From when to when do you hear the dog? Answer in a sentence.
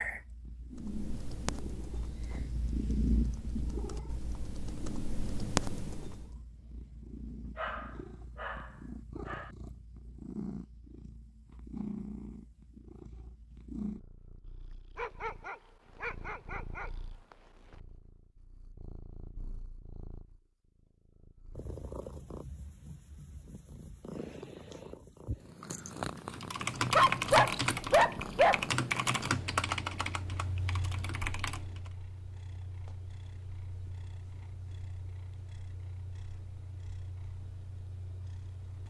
You can hear the dog from 7.5 to 9.5 s, from 14.9 to 17.4 s and from 26.9 to 28.6 s.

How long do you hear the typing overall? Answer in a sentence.
You can hear the typing for 11 seconds altogether.